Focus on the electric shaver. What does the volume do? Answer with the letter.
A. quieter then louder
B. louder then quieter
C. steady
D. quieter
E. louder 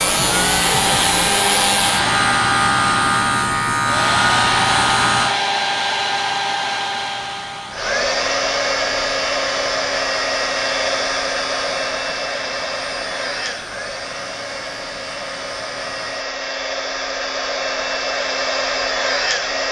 D.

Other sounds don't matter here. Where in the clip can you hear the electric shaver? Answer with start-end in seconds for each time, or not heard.
0.0-16.2.